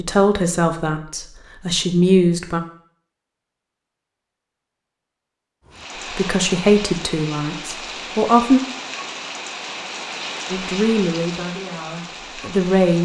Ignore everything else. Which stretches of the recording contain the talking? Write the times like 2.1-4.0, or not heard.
0.0-2.6, 6.1-8.6, 10.5-13.0.